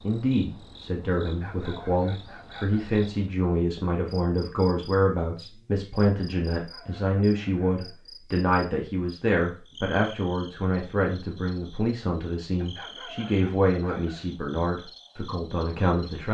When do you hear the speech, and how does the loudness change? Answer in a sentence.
The speech can be heard from 0.0 to 16.2 s, at a steady volume.